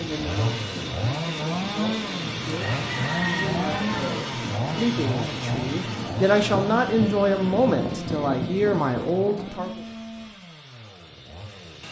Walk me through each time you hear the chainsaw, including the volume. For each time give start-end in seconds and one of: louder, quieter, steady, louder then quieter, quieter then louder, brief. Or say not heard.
0.0-11.8 quieter.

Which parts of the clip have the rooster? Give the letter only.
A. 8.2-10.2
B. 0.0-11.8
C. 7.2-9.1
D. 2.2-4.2
D.